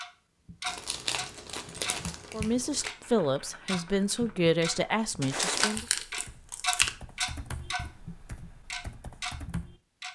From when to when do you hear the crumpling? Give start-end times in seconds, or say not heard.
0.7-2.9, 5.2-6.9.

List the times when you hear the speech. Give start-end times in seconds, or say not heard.
2.3-5.8.